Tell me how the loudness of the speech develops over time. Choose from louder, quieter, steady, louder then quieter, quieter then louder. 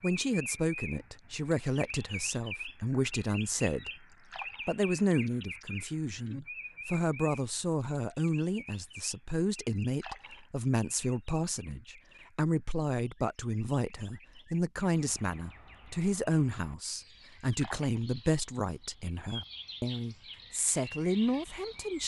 steady.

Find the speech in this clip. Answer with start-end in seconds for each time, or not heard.
0.0-3.9, 4.7-22.0.